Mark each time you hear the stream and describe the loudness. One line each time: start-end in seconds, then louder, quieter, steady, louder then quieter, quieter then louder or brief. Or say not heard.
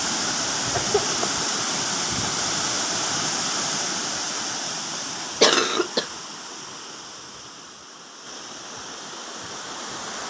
0.0-10.2 quieter.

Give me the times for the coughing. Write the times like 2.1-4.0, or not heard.
0.7-1.4, 5.4-6.0.